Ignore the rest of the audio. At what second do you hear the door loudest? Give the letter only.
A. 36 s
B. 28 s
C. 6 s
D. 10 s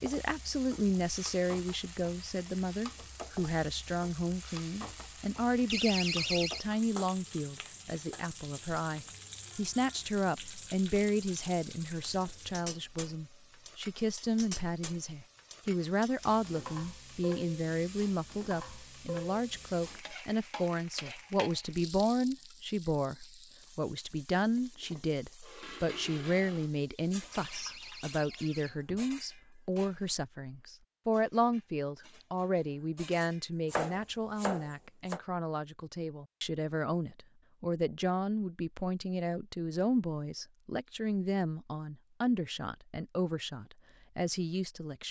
C.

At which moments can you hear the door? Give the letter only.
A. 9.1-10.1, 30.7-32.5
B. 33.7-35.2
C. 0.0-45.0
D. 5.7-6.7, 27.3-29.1
D.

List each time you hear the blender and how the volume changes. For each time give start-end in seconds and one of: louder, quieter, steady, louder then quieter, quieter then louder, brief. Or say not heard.
not heard.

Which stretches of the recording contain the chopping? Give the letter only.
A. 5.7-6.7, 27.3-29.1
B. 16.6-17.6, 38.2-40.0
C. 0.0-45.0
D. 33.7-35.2
D.